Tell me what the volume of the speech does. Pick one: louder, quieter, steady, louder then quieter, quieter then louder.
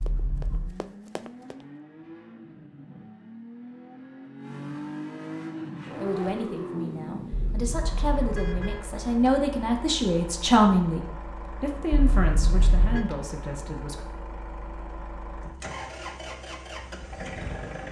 louder then quieter.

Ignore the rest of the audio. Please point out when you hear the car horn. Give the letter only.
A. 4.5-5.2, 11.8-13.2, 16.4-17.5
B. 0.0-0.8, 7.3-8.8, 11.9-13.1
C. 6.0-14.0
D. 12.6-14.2
B.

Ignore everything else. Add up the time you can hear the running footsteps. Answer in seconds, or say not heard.
2 s.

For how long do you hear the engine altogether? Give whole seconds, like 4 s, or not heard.
18 s.